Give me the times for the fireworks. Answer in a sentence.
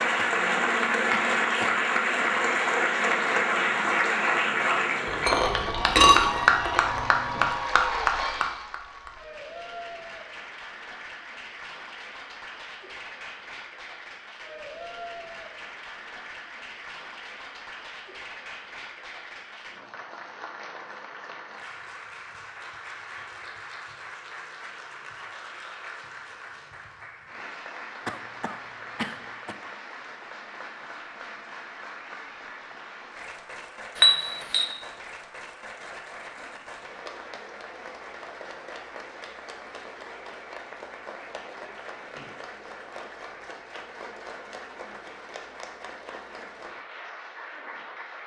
You can't hear the fireworks here.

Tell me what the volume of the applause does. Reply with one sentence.
The volume of the applause goes down.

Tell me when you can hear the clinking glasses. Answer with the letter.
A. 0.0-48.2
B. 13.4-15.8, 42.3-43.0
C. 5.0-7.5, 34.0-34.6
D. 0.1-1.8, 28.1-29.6
C.